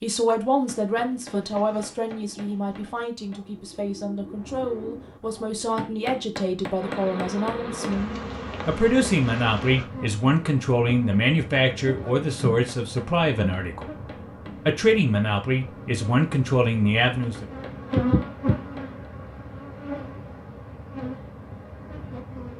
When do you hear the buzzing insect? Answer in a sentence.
You can hear the buzzing insect from 6.8 to 22.5 s.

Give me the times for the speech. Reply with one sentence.
The speech can be heard from 0.0 to 13.9 s and from 14.7 to 17.4 s.